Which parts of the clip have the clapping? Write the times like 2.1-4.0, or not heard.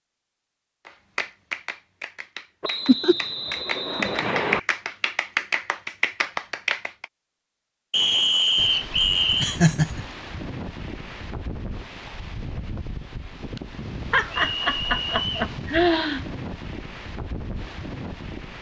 0.8-7.0.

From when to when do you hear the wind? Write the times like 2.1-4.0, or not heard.
8.6-18.5.